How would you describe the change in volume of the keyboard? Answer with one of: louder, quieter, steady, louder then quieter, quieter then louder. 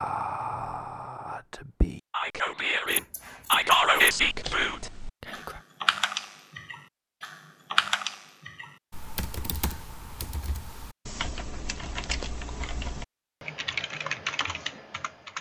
quieter then louder.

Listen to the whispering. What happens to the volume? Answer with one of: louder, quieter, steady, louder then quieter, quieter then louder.
louder then quieter.